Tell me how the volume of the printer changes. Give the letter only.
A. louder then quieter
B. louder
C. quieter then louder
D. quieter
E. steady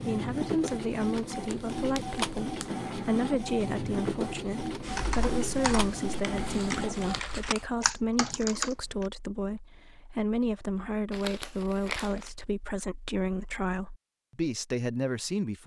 E.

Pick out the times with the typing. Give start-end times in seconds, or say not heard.
4.8-8.8.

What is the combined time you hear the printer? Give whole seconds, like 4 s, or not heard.
7 s.